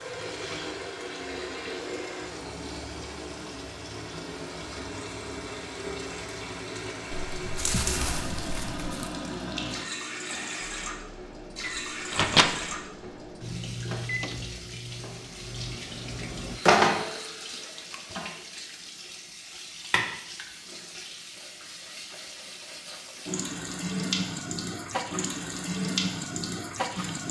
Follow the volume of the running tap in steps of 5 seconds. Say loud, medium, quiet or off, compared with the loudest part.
medium, medium, medium, loud, medium, loud.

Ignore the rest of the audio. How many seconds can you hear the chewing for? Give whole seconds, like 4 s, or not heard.
4 s.